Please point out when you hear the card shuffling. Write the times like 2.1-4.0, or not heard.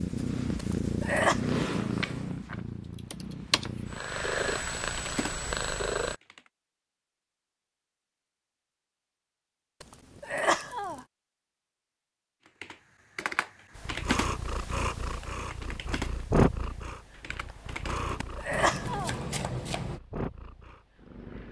2.0-2.6, 18.5-20.0.